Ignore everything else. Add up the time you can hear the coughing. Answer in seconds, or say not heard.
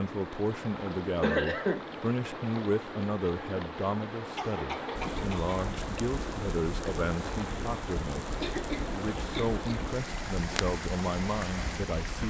3 s.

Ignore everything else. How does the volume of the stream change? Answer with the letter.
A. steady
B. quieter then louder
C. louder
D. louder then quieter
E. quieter
A.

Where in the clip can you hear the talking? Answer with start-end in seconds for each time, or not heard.
0.0-12.2.